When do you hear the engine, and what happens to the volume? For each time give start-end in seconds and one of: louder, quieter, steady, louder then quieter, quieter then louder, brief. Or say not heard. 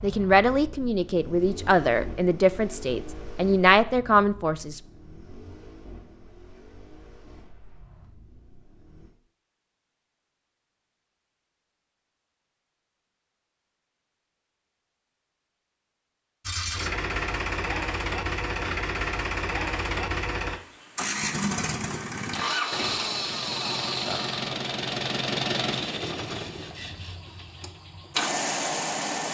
0.0-9.1 quieter
16.4-29.2 steady.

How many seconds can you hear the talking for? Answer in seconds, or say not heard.
5 s.